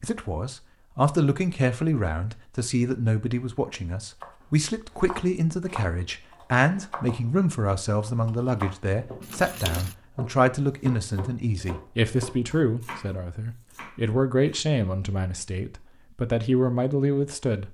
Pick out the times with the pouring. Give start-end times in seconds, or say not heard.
9.0-9.9.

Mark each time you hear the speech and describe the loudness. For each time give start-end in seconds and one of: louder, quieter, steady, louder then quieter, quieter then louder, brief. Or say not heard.
0.0-17.7 steady.